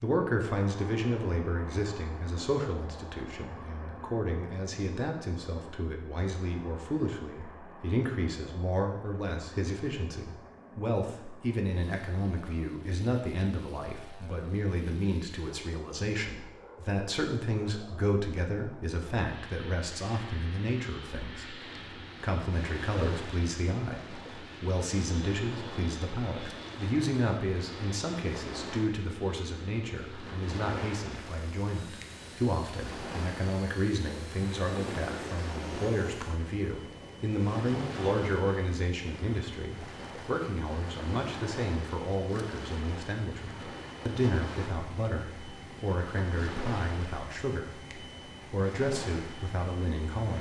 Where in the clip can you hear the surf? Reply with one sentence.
The surf can be heard from 21.6 to 50.3 s.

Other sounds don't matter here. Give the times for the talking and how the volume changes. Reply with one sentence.
You can hear the talking from 0.0 to 50.3 s, at a steady volume.